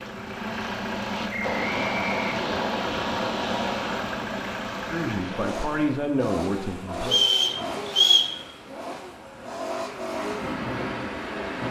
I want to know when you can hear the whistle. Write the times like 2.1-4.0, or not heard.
1.3-2.3, 7.0-8.3.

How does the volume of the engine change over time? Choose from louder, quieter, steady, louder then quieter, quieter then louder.
steady.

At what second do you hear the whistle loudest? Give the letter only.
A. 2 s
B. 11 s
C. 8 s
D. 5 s
C.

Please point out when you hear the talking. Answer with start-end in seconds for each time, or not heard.
4.8-7.2.